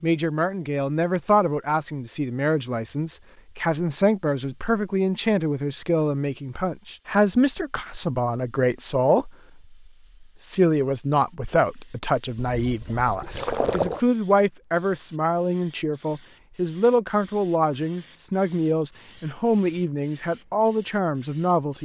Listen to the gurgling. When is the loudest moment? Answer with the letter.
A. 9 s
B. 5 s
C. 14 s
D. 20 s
C.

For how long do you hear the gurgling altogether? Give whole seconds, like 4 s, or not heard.
2 s.